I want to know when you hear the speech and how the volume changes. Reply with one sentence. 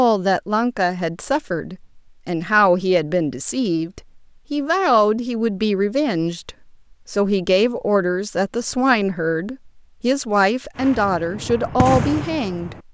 The speech can be heard from 0.0 to 12.8 s, at a steady volume.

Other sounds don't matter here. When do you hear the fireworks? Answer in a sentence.
The fireworks can be heard from 10.8 to 12.8 s.